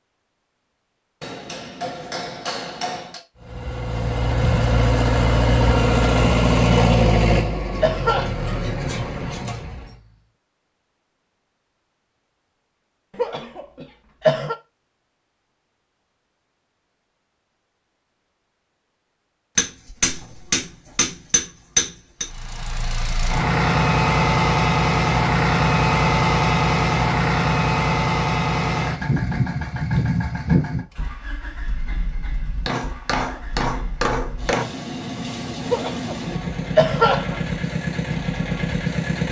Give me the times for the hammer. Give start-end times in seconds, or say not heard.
1.2-3.2, 19.6-22.2, 32.6-34.6.